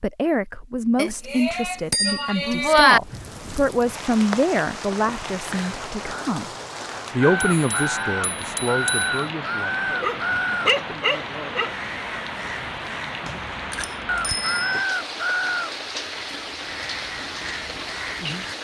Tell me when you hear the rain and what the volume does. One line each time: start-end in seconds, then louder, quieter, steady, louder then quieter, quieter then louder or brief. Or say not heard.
3.0-18.5 steady.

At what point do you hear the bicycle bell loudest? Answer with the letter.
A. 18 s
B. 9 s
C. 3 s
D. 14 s
C.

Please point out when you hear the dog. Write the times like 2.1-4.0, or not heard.
9.8-11.8.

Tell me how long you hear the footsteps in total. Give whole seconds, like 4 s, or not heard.
not heard.